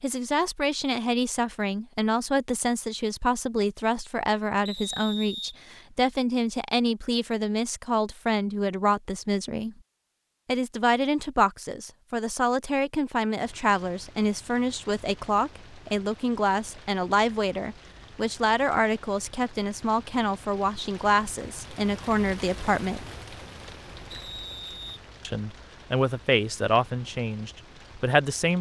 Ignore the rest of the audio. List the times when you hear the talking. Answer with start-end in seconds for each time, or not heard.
0.0-9.8, 10.4-23.1, 25.2-28.5.